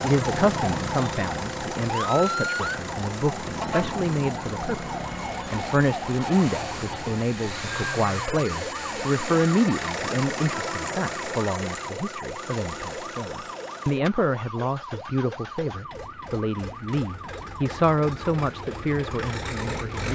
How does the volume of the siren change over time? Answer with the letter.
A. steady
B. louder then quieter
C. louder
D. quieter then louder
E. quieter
E.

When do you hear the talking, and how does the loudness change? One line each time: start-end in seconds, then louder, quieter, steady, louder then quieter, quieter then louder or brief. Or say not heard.
0.0-20.1 steady.